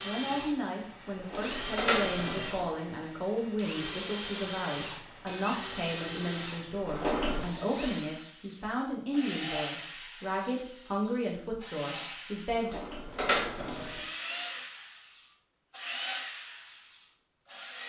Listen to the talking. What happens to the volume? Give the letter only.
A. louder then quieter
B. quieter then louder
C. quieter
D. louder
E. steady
E.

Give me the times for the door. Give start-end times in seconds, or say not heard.
1.1-2.7, 6.8-7.5, 12.5-13.9.